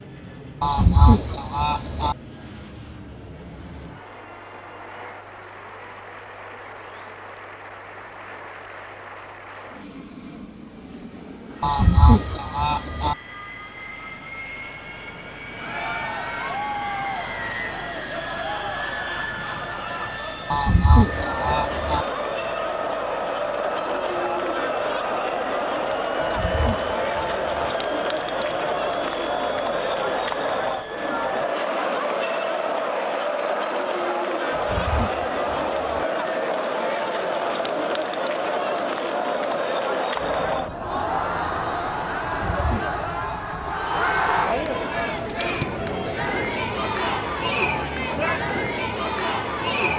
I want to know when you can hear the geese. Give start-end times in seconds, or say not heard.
0.6-2.1, 11.6-13.2, 20.5-22.1, 26.2-27.8, 34.5-36.0, 42.2-43.8.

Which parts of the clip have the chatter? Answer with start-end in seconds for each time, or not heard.
15.5-49.9.